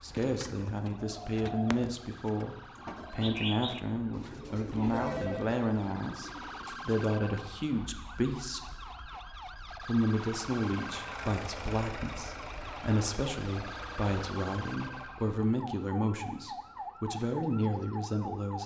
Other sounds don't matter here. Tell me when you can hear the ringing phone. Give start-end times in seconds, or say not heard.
4.7-5.5.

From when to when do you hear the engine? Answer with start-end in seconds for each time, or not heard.
10.2-15.1.